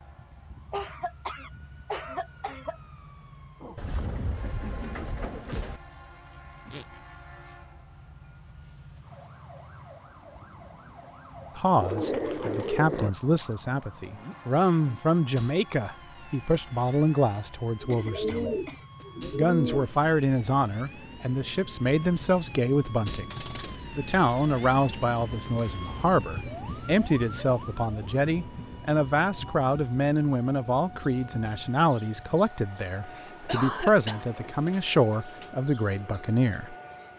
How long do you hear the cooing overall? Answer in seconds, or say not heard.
11 s.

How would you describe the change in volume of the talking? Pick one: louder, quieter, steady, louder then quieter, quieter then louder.
steady.